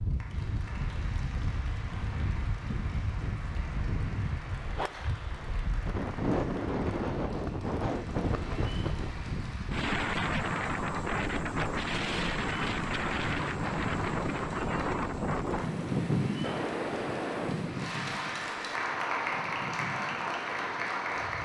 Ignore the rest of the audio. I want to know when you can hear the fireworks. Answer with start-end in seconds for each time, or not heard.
not heard.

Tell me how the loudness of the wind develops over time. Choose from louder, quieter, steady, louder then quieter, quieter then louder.
louder then quieter.